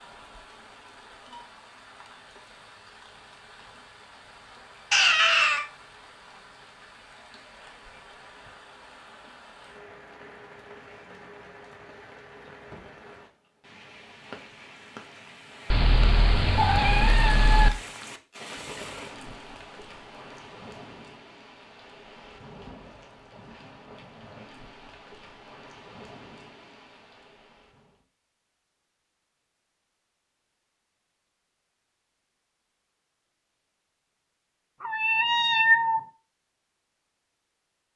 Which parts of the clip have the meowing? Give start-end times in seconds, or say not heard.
4.9-5.7, 15.7-17.7, 34.8-36.0.